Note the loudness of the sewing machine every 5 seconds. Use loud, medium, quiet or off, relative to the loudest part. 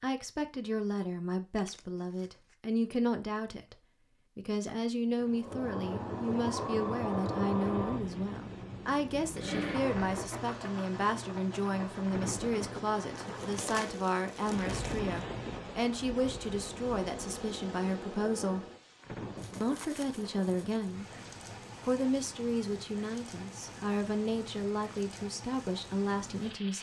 off, loud, medium, medium, off, off.